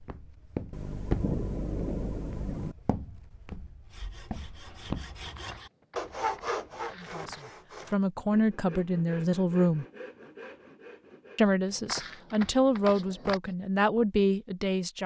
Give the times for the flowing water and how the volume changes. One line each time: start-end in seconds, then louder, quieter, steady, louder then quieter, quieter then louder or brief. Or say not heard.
not heard.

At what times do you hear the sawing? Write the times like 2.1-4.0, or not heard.
3.9-11.4.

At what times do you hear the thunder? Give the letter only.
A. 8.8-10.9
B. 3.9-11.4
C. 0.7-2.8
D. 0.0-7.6
C.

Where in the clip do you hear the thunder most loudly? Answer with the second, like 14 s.
1 s.